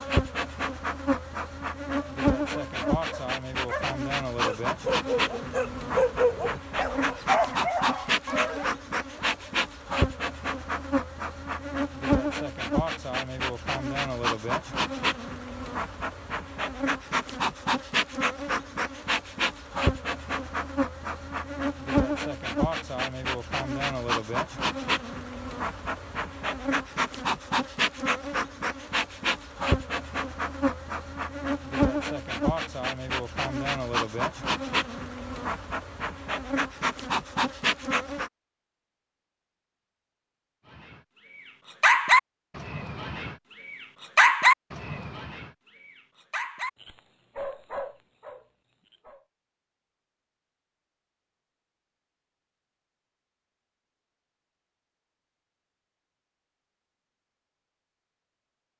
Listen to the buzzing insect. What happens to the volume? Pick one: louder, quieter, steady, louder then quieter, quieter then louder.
steady.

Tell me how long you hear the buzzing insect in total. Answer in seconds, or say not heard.
38 s.